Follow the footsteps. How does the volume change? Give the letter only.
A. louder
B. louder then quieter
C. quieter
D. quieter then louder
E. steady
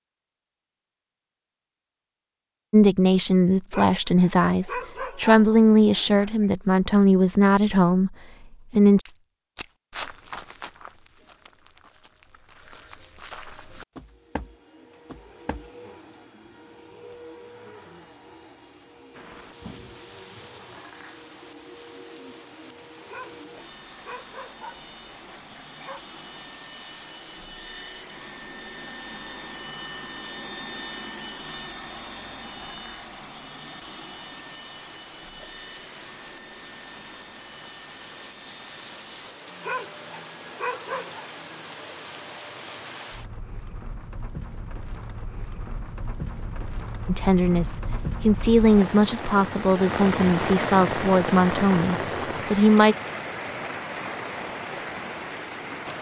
D.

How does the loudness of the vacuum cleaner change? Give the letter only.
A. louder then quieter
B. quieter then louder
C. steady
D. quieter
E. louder
A.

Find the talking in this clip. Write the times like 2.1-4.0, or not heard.
2.7-9.0, 47.0-53.0.